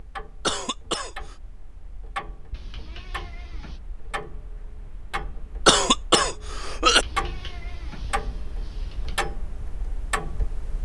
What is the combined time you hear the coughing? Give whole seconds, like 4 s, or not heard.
2 s.